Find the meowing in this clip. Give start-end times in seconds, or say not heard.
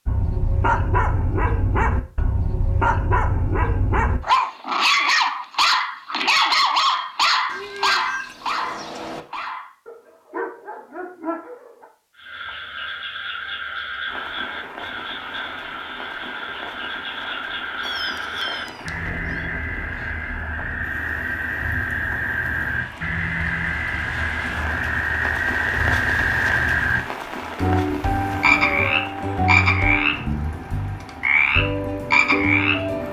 7.5-9.2, 17.8-19.4, 27.9-29.1.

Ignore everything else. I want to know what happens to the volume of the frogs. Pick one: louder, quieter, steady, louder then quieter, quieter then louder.
louder.